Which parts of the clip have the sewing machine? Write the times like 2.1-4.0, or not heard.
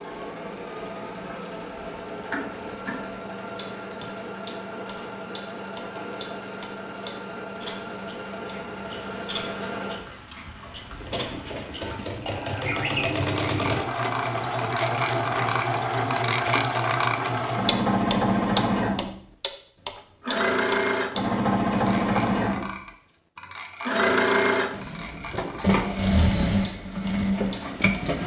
0.0-28.2.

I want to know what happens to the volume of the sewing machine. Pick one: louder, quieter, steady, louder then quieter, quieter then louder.
louder.